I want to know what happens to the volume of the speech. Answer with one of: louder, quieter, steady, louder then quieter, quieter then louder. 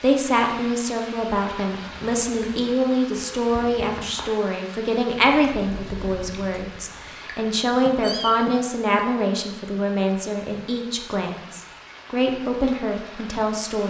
steady.